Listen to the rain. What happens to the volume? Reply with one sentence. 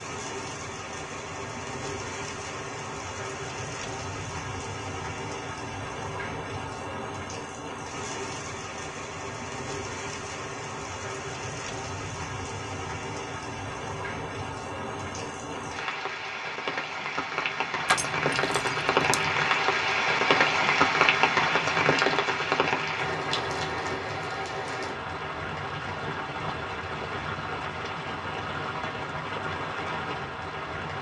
The volume of the rain goes up, then down.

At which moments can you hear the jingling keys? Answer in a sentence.
You can hear the jingling keys from 17.9 to 19.3 s.